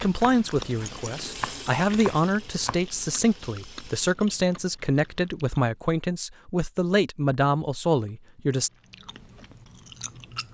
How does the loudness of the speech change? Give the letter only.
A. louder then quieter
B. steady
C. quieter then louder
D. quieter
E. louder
B.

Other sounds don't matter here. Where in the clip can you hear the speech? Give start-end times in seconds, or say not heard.
0.0-8.7.